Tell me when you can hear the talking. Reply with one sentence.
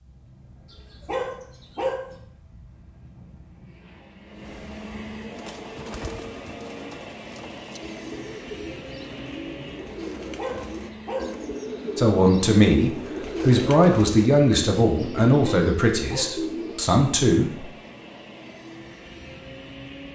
You can hear the talking from 11.9 to 17.6 s.